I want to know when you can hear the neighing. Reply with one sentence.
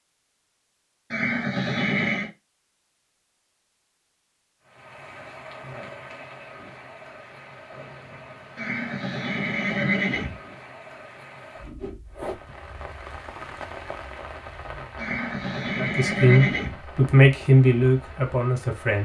The neighing can be heard from 1.1 to 2.3 s, from 8.6 to 10.3 s and from 14.9 to 16.8 s.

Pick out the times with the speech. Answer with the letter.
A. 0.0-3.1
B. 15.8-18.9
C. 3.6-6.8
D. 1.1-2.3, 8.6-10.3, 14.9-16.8
B.